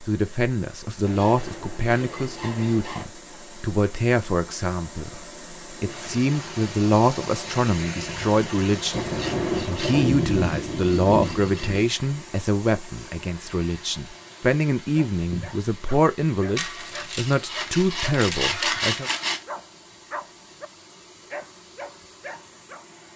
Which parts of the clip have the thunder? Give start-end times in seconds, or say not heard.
8.9-11.8.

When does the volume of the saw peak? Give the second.
19 s.